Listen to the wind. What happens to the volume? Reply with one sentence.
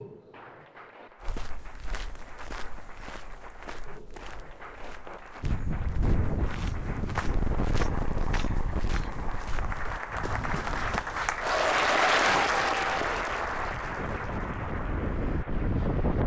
The loudness of the wind goes down, then up.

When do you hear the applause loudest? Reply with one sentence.
The volume of the applause peaks at 12 seconds.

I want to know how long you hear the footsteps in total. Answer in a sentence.
You can hear the footsteps for 10 seconds altogether.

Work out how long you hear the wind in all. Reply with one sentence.
You can hear the wind for 11 seconds altogether.